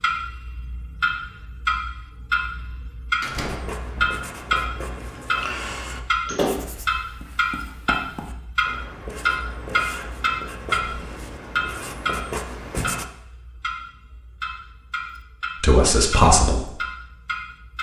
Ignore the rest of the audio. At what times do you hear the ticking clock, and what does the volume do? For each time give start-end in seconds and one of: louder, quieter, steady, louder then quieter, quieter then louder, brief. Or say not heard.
0.0-17.7 quieter.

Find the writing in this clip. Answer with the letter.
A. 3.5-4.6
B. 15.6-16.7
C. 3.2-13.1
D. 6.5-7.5
C.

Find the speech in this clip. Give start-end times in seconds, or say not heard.
15.6-16.7.